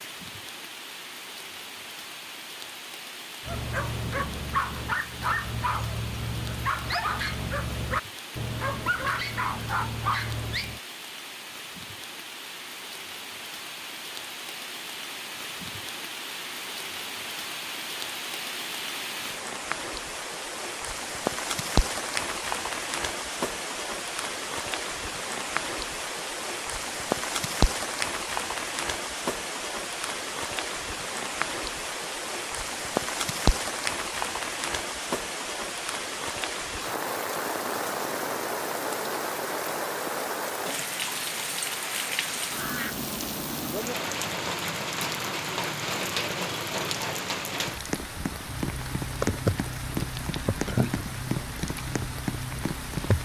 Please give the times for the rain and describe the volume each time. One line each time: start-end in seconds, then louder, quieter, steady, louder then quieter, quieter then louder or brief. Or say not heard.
0.0-53.1 louder.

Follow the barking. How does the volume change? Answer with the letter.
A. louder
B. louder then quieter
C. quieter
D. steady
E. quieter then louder
D.